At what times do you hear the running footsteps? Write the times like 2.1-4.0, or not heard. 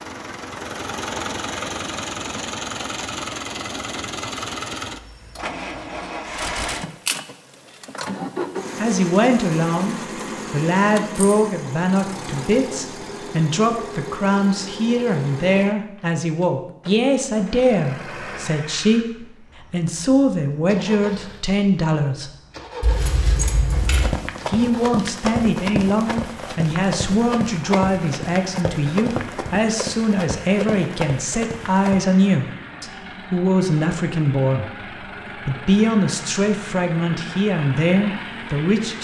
23.7-32.0.